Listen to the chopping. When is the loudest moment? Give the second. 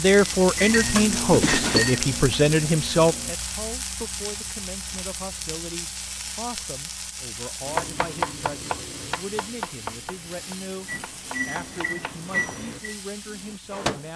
8 s.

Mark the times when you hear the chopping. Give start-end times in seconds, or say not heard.
7.7-12.8.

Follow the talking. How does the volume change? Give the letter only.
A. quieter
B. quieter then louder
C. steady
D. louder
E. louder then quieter
A.